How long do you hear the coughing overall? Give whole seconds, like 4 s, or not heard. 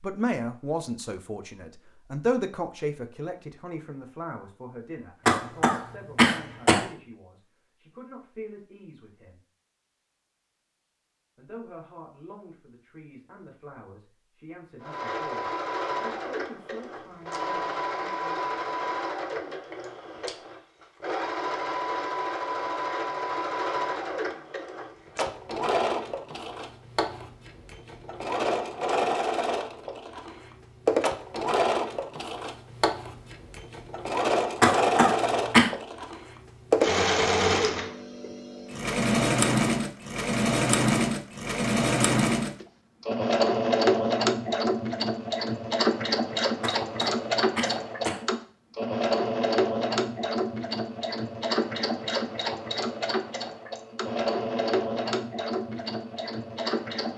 4 s.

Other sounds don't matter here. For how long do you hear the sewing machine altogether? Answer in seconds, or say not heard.
42 s.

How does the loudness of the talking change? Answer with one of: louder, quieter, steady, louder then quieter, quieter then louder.
quieter.